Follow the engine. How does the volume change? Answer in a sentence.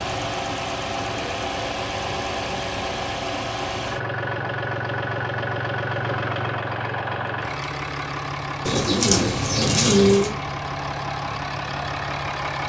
The loudness of the engine stays about the same.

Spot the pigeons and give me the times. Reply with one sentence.
You can hear the pigeons from 8.7 to 10.3 s.